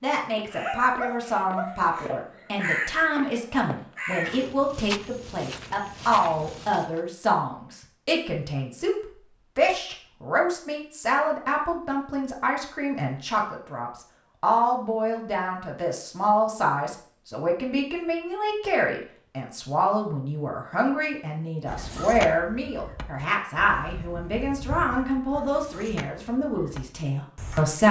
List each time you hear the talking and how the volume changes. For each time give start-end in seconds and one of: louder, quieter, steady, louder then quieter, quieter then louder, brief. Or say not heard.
0.0-27.8 steady.